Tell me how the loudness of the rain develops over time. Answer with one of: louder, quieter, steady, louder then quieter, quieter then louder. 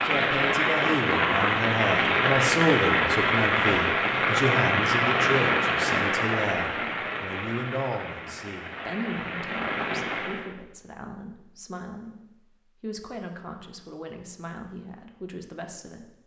quieter.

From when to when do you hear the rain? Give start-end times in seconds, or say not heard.
0.0-10.5.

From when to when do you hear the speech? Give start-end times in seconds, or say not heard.
0.1-16.2.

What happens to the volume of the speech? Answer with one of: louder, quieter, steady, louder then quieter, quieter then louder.
quieter.